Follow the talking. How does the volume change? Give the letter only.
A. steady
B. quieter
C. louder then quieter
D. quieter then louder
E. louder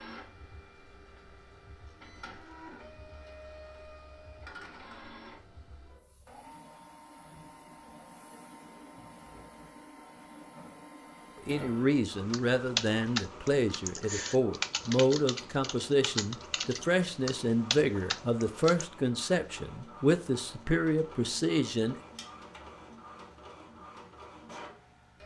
A.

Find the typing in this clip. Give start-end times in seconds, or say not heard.
12.2-18.9.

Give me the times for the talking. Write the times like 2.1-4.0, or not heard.
11.4-21.9.